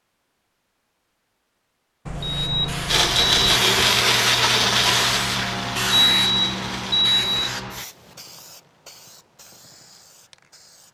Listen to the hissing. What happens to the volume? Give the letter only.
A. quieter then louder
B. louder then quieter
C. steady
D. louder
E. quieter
E.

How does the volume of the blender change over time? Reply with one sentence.
The volume of the blender goes down.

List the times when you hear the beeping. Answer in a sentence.
The beeping can be heard from 2.0 to 3.6 s and from 5.8 to 7.5 s.